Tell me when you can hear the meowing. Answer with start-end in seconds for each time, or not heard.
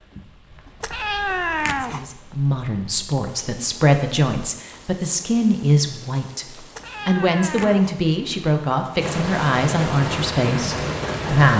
0.8-2.0, 6.7-8.0.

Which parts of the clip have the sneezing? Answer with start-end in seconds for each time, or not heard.
not heard.